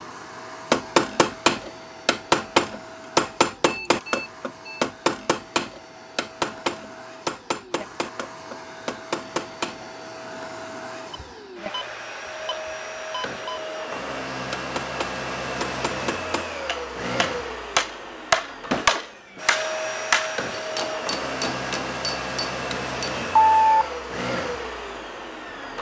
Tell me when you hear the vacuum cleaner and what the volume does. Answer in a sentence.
You can hear the vacuum cleaner from 0.0 to 25.7 s, getting louder.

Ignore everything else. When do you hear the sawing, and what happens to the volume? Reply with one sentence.
The sawing can't be heard in this clip.